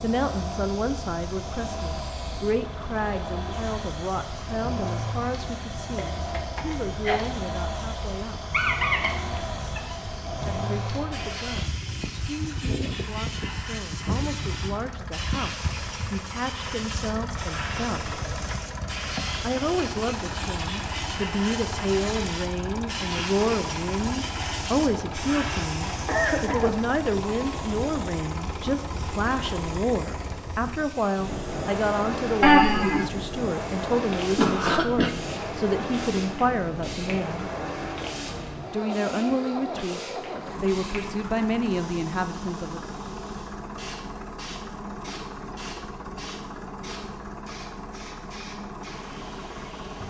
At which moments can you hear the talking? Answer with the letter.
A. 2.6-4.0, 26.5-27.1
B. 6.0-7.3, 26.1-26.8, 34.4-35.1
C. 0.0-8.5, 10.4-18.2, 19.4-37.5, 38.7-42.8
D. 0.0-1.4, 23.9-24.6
C.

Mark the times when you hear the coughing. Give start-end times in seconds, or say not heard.
6.0-7.3, 26.1-26.8, 34.4-35.1.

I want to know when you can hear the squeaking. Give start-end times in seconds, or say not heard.
8.5-9.9, 32.4-33.0.